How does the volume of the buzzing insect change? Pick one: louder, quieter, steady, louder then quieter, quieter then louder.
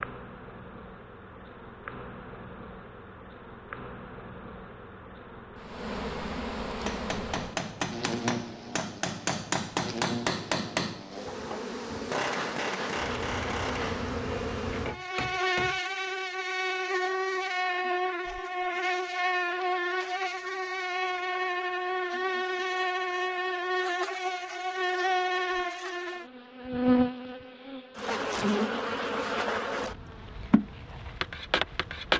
louder.